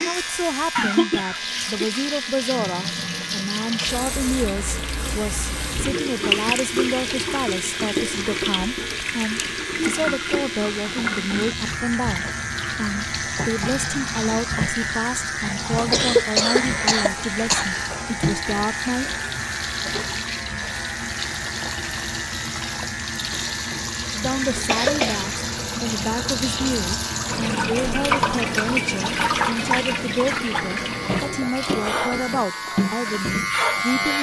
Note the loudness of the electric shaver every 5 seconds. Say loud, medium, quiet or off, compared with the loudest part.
medium, medium, loud, loud, medium, medium, loud.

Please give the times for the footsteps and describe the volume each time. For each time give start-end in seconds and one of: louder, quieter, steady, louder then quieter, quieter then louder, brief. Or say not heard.
not heard.